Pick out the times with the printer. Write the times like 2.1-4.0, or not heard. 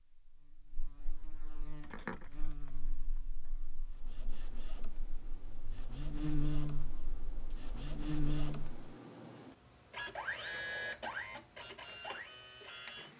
3.9-13.1.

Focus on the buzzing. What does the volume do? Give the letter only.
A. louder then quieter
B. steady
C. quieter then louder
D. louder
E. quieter
C.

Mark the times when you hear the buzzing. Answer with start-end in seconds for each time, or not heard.
0.0-8.8.